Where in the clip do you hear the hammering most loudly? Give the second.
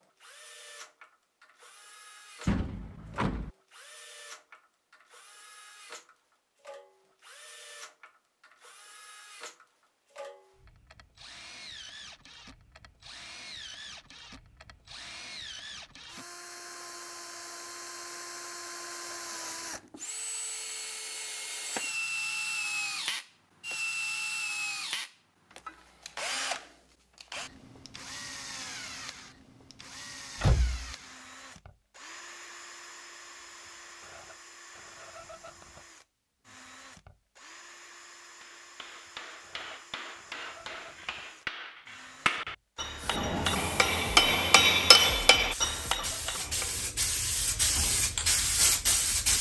45 s.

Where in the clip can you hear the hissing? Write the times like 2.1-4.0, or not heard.
43.0-49.3.